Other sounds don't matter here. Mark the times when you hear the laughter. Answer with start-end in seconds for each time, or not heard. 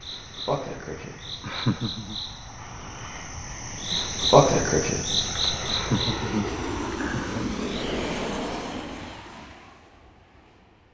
1.4-2.1, 5.7-7.5.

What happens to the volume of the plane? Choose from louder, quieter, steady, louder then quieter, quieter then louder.
louder then quieter.